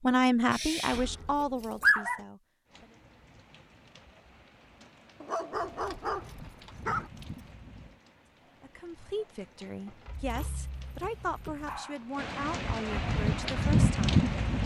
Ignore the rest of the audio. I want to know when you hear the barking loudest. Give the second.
2 s.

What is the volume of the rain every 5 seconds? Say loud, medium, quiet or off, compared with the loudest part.
quiet, quiet, loud.